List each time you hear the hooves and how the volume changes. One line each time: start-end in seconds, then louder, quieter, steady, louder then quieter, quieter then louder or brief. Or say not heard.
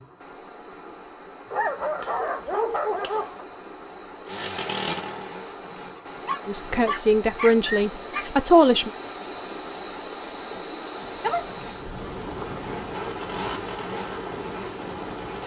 not heard.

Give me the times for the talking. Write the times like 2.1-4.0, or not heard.
6.5-8.9.